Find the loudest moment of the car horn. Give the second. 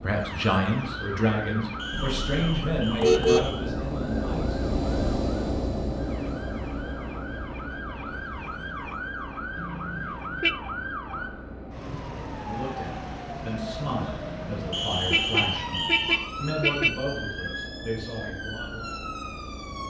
3 s.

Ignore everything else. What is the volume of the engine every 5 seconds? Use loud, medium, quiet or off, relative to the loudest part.
loud, loud, medium, medium.